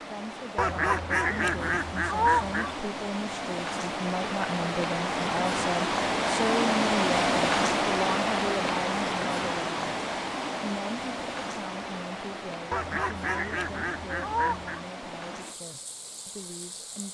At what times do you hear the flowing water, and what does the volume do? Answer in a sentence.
The flowing water can be heard from 0.0 to 17.0 s, getting louder then quieter.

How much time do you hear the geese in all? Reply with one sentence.
You can hear the geese for 4 seconds altogether.